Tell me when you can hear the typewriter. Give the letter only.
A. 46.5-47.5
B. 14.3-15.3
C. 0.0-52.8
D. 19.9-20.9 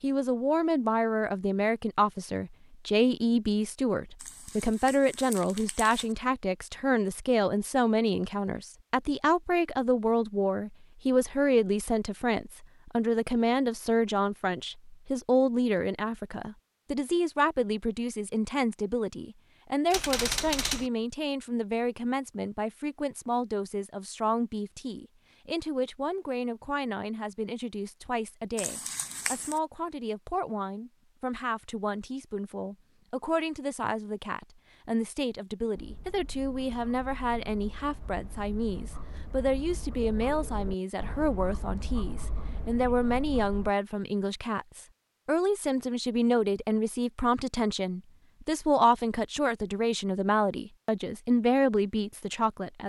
D.